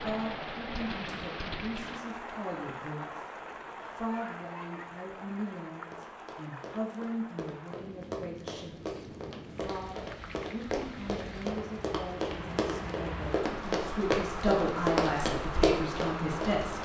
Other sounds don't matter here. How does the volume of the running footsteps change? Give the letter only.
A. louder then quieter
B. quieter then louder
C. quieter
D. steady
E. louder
E.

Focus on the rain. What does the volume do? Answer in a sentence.
The loudness of the rain goes down, then up.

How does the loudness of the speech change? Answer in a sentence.
The loudness of the speech goes up.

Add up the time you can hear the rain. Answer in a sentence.
You can hear the rain for 17 seconds altogether.